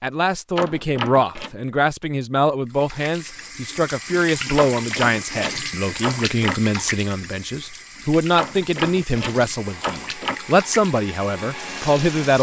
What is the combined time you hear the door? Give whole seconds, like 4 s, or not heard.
5 s.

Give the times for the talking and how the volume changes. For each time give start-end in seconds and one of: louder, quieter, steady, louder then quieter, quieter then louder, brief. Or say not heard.
0.0-12.3 steady.